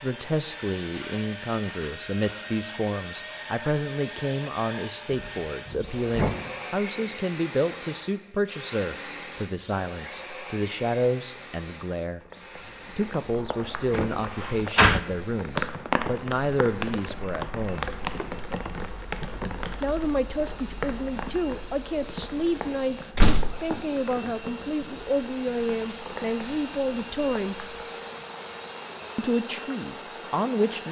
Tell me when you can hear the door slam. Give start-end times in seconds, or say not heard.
5.1-6.3, 13.9-15.0, 23.1-23.6.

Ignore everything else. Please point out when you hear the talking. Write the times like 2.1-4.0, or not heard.
0.0-12.2, 12.9-17.9, 19.8-27.6, 29.1-30.8.